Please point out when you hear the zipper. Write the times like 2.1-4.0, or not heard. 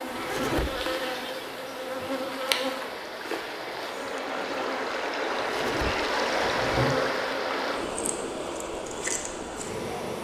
0.1-0.7, 5.3-7.0.